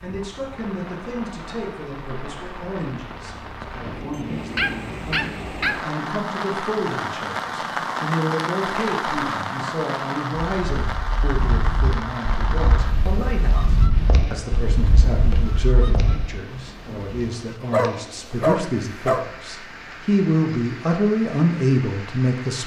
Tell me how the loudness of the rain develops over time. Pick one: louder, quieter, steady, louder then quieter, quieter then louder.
louder then quieter.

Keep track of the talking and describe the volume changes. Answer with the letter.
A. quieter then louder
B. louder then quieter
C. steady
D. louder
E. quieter
D.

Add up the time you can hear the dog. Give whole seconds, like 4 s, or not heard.
3 s.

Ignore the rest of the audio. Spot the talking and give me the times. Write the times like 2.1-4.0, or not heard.
0.0-22.6.